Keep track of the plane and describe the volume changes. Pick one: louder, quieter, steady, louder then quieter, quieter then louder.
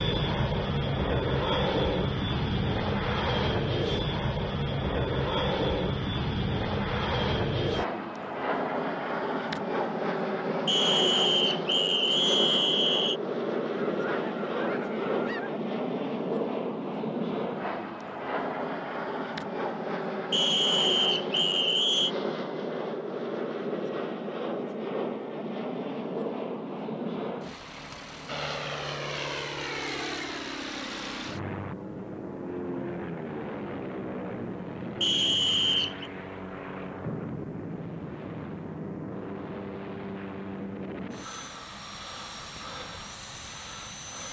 quieter.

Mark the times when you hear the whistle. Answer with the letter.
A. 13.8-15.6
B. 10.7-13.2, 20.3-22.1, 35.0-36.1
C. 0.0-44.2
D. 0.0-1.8
B.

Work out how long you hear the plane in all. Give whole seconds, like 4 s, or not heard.
44 s.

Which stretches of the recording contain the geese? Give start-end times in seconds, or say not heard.
13.8-15.6.